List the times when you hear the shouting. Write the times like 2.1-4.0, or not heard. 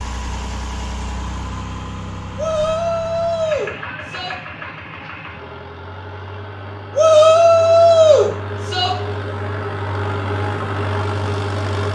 2.4-4.3, 7.0-8.9.